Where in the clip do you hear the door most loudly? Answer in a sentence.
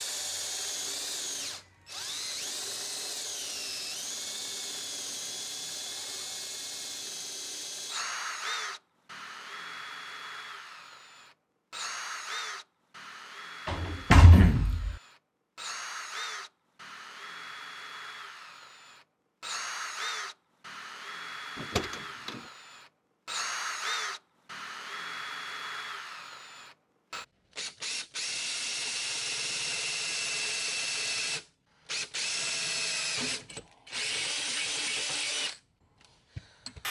The loudest moment of the door is at 14 seconds.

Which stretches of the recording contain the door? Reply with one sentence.
You can hear the door from 13.7 to 14.9 s and from 21.6 to 22.4 s.